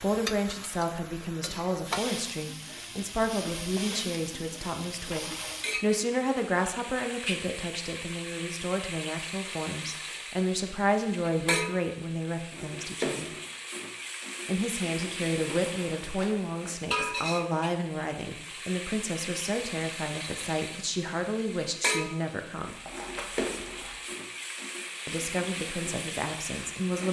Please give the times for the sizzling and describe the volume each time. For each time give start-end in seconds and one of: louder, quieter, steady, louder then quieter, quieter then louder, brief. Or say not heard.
0.0-27.0 steady.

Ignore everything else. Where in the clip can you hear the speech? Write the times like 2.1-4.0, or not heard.
0.0-13.3, 14.4-22.8, 25.1-27.0.